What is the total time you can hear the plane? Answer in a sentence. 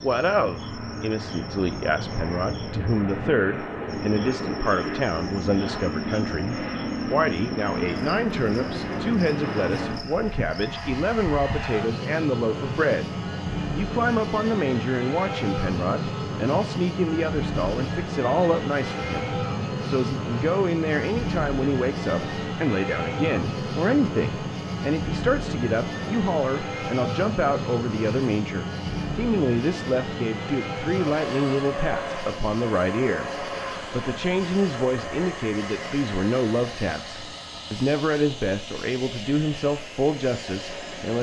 You can hear the plane for 41 seconds altogether.